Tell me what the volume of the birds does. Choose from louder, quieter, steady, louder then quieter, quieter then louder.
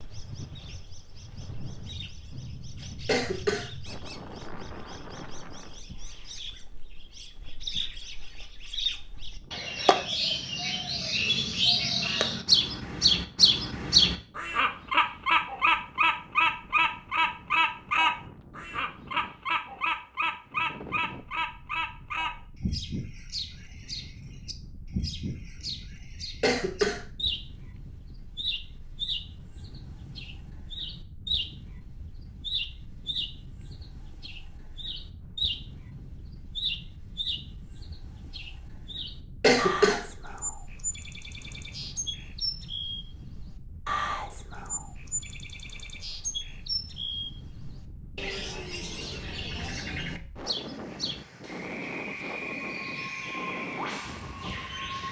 louder then quieter.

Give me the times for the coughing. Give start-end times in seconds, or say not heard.
3.0-3.7, 26.4-27.0, 39.4-40.0.